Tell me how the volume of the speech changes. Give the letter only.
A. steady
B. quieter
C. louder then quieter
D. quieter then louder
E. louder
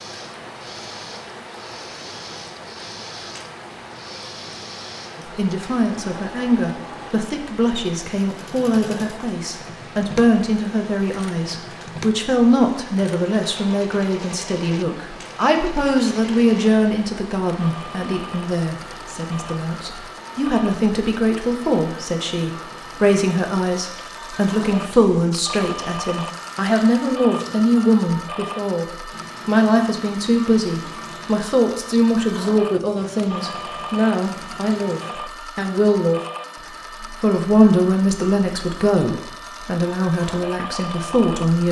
A.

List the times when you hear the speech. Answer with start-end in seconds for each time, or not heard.
5.3-36.2, 37.0-41.6.